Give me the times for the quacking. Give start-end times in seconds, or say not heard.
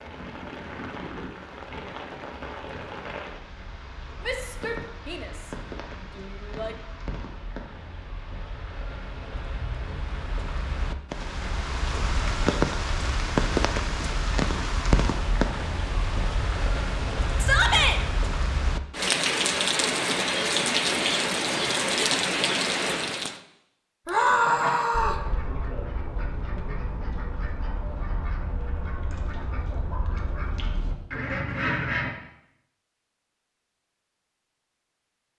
24.2-32.1.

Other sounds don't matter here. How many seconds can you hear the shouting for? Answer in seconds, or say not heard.
4 s.